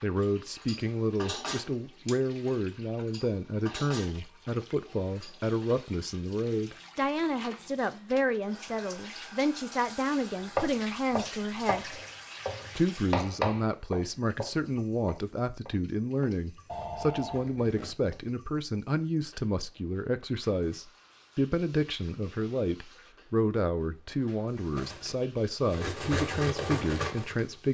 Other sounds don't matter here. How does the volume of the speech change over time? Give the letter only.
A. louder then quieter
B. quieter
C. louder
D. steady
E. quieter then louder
D.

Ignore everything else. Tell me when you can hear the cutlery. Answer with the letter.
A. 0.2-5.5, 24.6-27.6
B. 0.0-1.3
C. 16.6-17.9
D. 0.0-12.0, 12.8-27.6
A.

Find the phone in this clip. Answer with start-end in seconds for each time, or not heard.
16.6-17.9.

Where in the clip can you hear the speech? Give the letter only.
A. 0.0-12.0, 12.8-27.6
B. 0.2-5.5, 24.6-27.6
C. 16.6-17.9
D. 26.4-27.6
A.